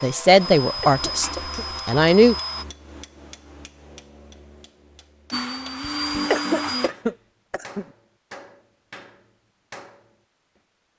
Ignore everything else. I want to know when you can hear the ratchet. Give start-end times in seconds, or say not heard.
not heard.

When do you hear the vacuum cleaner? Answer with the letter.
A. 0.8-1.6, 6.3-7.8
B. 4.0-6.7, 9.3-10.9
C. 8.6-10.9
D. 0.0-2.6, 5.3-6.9
D.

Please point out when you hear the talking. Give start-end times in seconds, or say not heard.
0.0-2.4.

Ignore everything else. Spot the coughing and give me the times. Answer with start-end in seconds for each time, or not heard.
0.8-1.6, 6.3-7.8.